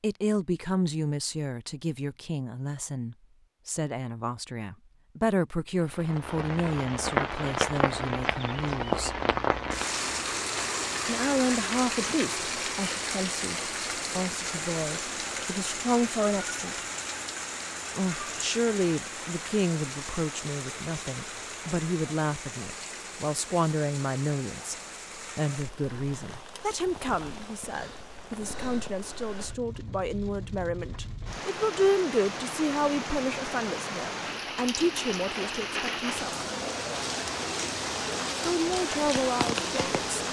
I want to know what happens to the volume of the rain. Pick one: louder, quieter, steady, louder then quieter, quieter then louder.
quieter then louder.